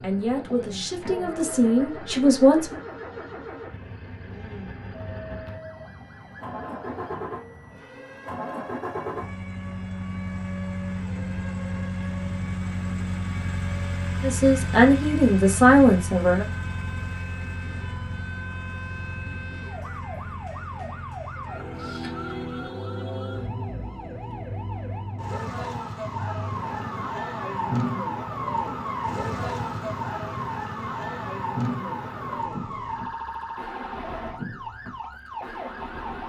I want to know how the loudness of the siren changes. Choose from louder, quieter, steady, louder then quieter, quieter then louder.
louder.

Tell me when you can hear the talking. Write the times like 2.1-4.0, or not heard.
0.0-2.8, 14.2-16.4.